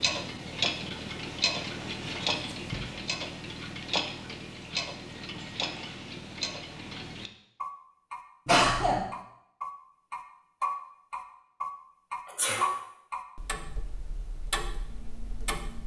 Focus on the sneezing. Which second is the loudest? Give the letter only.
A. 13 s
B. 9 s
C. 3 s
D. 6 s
B.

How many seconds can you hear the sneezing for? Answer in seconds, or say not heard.
2 s.